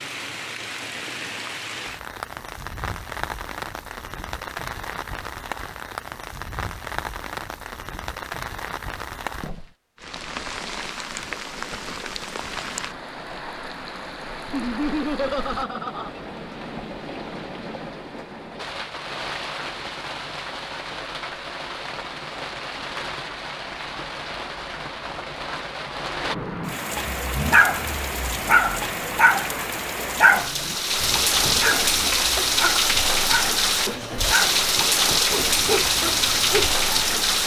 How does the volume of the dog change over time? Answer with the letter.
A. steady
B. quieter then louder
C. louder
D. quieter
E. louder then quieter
D.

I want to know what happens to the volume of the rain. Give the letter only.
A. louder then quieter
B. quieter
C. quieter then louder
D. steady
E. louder
E.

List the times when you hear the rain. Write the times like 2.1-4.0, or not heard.
0.0-37.4.